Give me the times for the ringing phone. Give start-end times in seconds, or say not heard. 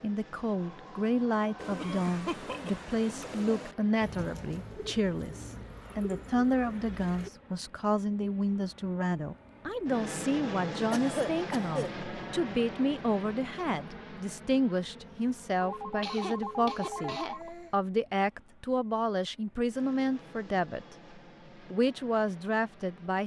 0.5-1.8, 15.6-17.5.